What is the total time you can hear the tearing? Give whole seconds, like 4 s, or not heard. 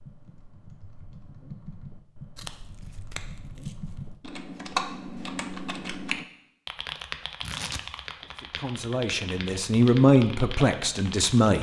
3 s.